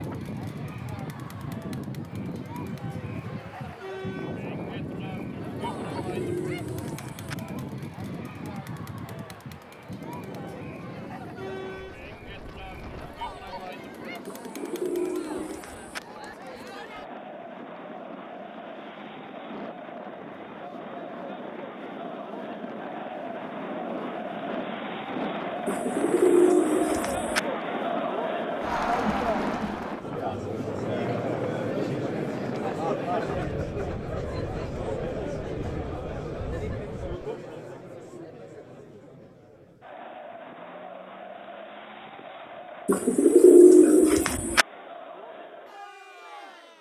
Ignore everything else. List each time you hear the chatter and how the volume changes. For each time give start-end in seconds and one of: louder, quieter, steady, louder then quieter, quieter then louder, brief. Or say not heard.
0.0-46.7 louder then quieter.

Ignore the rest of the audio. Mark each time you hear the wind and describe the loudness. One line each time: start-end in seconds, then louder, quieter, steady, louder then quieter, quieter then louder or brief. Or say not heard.
0.0-37.2 quieter then louder.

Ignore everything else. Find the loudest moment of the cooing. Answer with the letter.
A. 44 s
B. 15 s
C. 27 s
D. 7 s
A.